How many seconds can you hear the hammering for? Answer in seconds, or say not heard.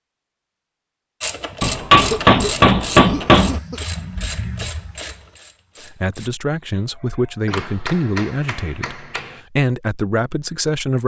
4 s.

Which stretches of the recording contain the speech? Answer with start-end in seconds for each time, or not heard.
5.9-11.0.